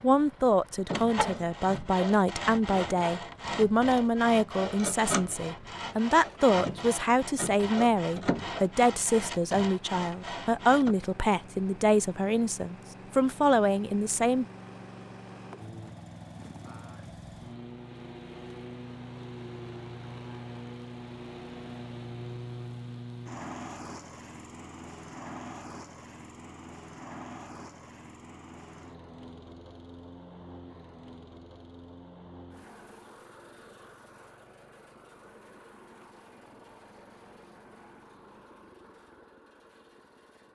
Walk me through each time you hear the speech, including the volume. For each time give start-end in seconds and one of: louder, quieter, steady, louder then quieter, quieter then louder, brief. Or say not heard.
0.0-14.4 steady.